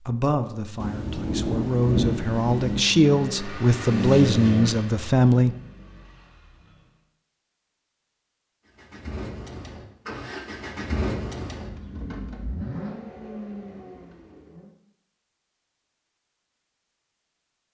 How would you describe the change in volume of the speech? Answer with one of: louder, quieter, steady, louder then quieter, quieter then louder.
louder.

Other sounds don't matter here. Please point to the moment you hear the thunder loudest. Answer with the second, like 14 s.
2 s.